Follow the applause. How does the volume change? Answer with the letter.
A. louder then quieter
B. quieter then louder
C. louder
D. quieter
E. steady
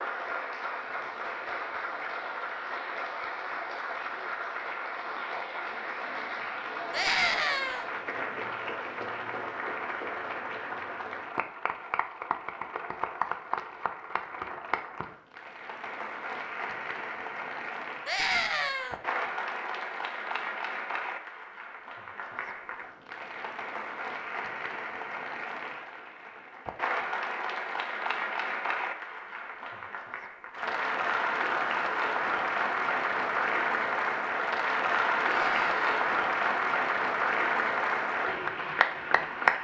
C.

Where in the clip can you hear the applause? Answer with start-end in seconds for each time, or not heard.
0.0-39.6.